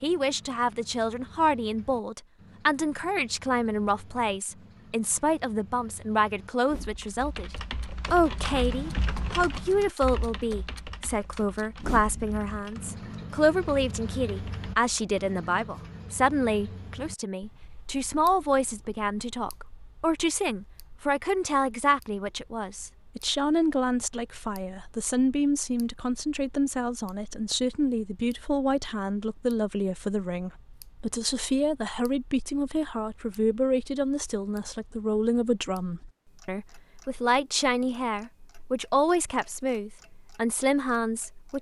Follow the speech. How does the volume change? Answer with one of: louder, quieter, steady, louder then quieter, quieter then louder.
steady.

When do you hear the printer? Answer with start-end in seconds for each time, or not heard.
not heard.